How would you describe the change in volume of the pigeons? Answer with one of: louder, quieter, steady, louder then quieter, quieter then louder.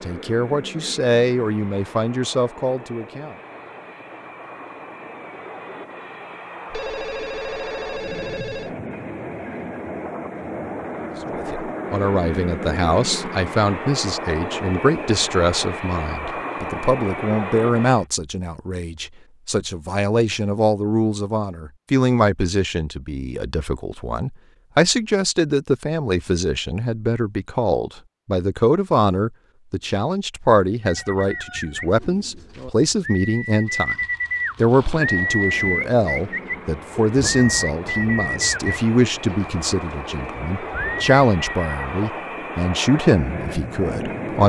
louder then quieter.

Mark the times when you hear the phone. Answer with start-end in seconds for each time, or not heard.
6.7-8.8.